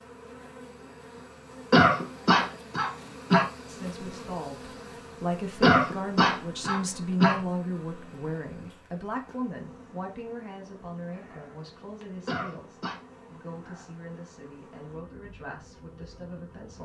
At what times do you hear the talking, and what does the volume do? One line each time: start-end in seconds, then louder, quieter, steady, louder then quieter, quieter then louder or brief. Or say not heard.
3.6-16.8 quieter.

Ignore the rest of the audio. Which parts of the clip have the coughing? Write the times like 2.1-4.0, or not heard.
1.7-3.5, 5.6-7.4, 12.2-13.0.